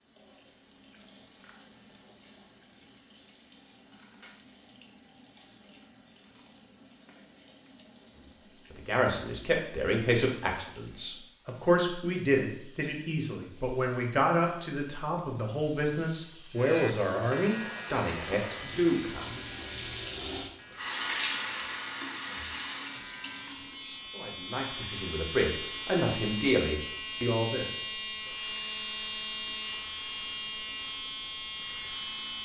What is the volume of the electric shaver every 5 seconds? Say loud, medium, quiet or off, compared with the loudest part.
off, off, off, medium, medium, loud, loud.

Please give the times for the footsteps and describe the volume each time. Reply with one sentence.
You can't hear the footsteps here.